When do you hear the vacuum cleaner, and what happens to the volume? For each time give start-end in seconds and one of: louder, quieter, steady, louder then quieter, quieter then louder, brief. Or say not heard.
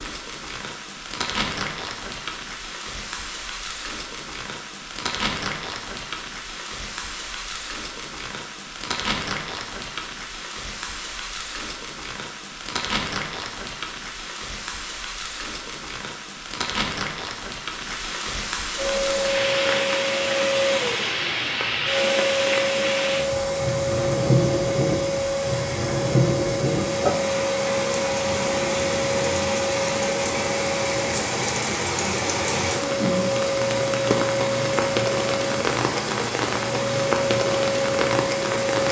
18.8-38.8 steady.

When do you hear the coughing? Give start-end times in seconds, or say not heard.
not heard.